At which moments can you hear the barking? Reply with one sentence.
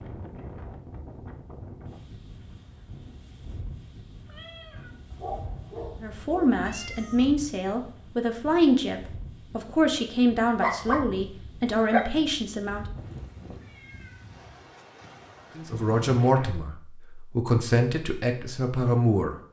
You can hear the barking from 5.1 to 7.0 s and from 10.6 to 12.1 s.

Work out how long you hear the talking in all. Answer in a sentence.
The talking can be heard for 11 seconds in total.